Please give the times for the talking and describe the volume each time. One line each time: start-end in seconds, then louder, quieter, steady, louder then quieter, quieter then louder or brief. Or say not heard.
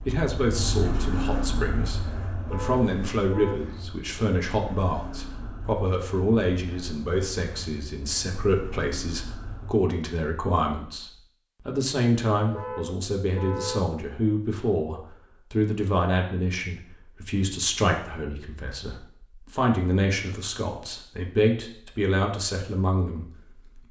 0.1-23.8 steady.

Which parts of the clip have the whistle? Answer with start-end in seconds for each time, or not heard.
not heard.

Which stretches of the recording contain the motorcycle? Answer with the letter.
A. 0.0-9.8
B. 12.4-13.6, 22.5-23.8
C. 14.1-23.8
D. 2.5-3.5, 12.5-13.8
A.